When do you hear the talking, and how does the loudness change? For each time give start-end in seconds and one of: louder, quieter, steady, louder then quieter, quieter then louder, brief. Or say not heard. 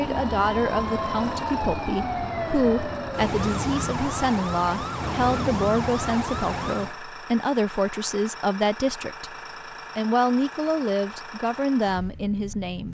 0.0-9.3 steady
9.9-12.8 brief.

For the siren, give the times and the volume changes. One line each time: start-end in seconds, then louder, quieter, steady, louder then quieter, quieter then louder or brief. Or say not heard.
0.0-7.0 steady.